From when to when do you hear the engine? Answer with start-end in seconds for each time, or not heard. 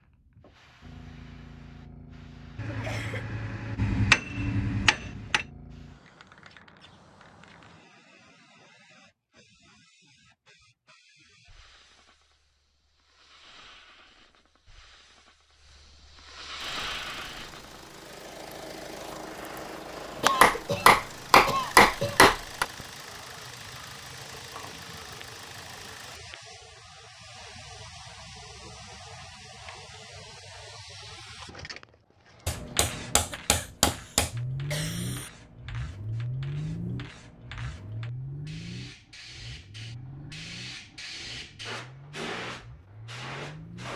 16.6-26.2, 34.3-43.9.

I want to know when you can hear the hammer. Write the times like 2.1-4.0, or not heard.
2.5-5.5, 20.4-22.6, 32.5-34.3.